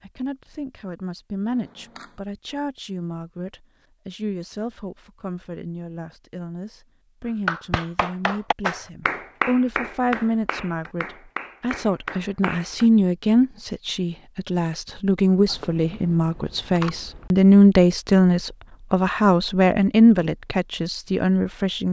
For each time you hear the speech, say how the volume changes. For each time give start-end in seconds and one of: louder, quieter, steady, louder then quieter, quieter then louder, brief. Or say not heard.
0.0-21.8 louder.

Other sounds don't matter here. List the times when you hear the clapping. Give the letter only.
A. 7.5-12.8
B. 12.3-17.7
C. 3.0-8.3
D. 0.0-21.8
A.